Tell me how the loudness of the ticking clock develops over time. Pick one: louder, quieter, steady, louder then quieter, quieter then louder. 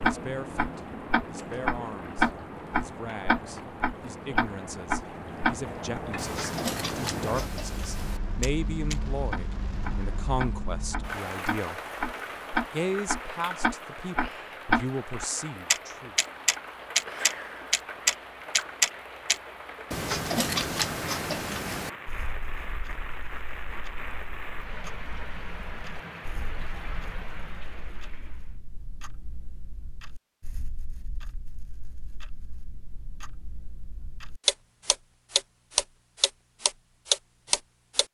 quieter then louder.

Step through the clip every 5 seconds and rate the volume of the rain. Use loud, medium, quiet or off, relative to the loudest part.
loud, loud, loud, loud, loud, medium, off, off.